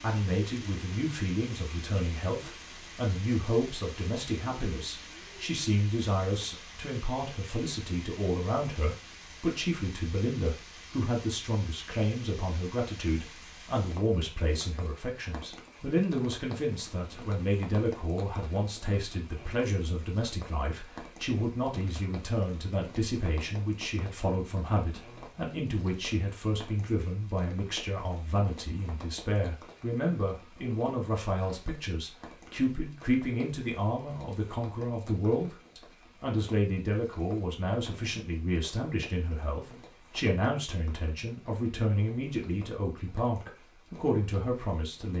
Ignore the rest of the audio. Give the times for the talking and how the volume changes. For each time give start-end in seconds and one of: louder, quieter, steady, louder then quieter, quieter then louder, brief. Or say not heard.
0.0-45.1 steady.